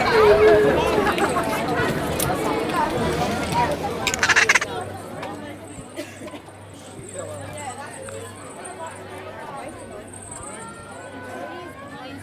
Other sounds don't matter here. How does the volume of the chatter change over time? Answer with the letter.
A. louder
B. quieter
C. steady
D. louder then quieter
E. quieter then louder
B.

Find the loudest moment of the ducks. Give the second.
4 s.